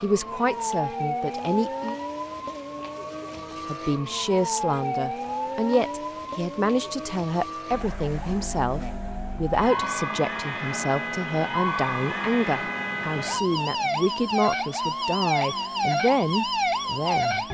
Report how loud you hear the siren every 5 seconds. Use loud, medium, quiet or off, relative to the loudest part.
medium, medium, loud, loud.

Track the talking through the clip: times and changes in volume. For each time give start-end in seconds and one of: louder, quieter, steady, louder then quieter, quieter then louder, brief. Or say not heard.
0.0-1.9 brief
3.6-17.4 steady.